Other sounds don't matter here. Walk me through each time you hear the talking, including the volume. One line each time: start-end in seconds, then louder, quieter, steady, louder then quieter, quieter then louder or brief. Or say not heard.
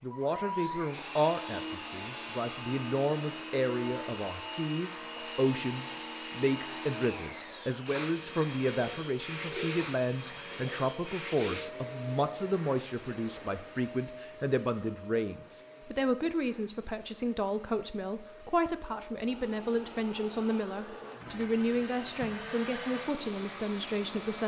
0.0-24.4 steady.